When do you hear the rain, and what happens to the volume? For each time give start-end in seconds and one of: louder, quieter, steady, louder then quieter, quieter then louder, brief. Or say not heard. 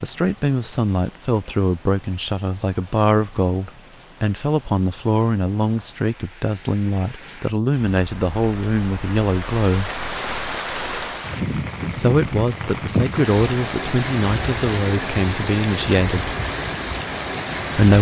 0.0-17.9 louder.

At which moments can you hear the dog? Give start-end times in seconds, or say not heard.
not heard.